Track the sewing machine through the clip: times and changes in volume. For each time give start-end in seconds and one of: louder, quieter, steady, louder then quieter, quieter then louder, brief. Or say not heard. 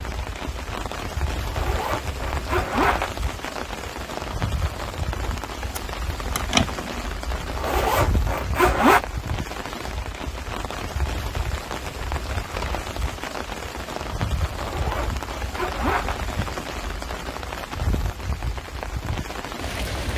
not heard.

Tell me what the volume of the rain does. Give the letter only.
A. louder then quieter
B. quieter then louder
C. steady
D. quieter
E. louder
C.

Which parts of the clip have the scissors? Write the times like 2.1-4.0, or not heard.
5.8-7.1.